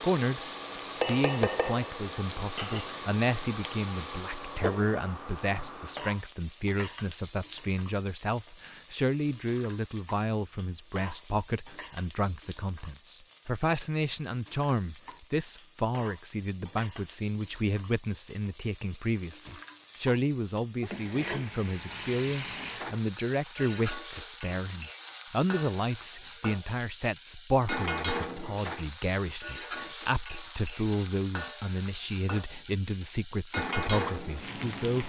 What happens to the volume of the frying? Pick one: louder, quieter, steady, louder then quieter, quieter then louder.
quieter then louder.